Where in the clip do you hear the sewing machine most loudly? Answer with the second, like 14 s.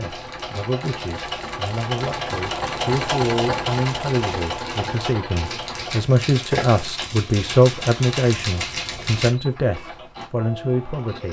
3 s.